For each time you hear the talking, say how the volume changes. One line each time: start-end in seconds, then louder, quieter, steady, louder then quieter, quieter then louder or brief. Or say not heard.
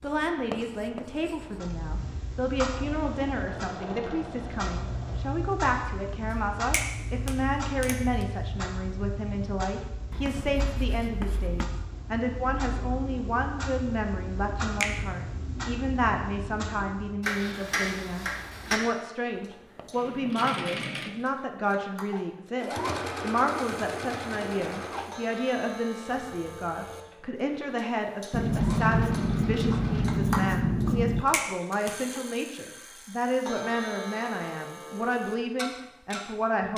0.0-36.7 steady.